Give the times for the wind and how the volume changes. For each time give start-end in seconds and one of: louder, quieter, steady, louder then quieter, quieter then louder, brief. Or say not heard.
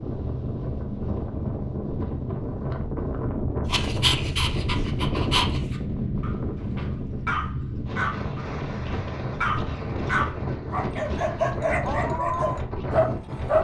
0.0-13.5 steady.